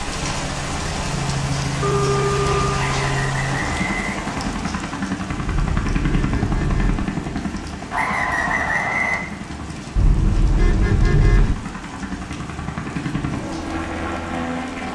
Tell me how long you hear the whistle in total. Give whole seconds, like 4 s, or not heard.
3 s.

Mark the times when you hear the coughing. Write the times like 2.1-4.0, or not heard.
not heard.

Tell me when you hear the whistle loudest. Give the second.
9 s.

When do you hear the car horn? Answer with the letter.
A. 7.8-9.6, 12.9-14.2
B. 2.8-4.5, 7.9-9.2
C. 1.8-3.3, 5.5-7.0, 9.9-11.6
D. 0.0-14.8
C.